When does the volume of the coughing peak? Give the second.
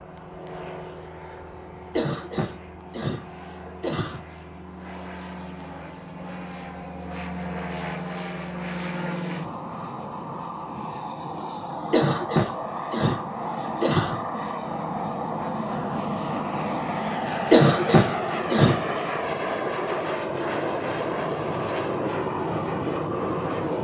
18 s.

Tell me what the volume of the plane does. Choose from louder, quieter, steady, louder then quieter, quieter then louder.
louder.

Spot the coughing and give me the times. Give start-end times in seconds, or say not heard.
1.9-4.2, 11.9-14.2, 17.5-18.9.